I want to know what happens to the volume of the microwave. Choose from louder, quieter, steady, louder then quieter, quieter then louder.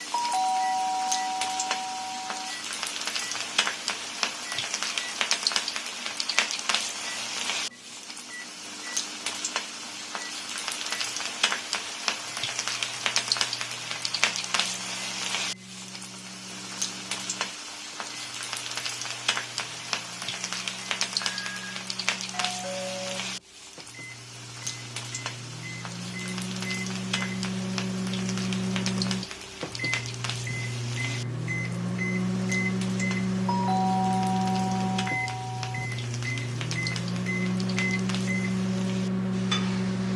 louder.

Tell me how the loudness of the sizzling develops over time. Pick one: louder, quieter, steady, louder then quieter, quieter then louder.
quieter.